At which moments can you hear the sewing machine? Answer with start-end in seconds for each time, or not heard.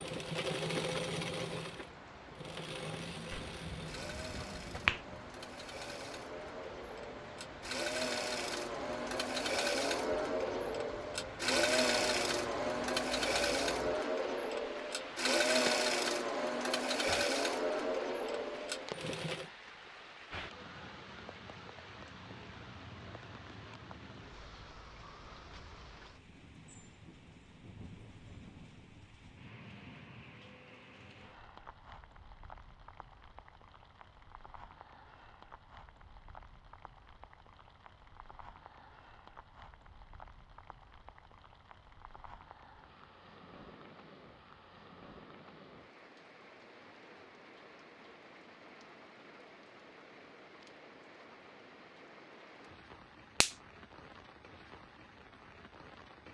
0.0-19.4.